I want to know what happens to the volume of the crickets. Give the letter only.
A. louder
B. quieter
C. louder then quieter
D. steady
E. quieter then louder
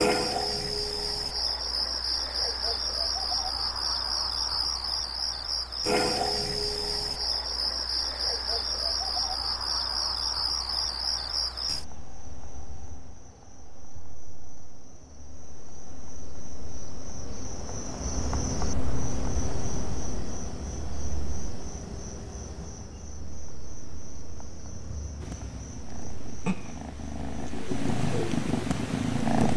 B.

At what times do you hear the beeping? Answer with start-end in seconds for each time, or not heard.
not heard.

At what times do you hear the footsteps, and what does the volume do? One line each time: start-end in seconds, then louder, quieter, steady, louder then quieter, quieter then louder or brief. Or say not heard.
not heard.